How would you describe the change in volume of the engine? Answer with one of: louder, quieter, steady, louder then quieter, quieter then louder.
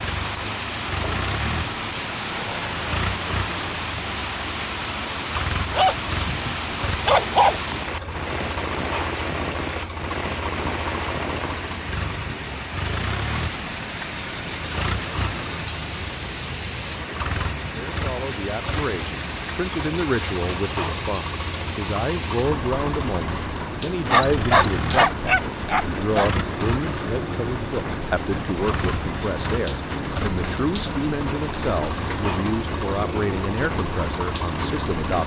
steady.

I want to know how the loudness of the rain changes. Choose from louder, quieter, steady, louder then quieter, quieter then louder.
steady.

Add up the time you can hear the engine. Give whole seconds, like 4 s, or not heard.
35 s.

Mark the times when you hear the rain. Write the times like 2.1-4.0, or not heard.
0.0-35.2.